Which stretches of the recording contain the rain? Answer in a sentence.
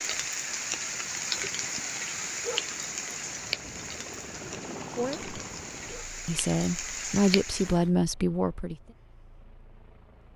You can hear the rain from 0.0 to 7.9 s.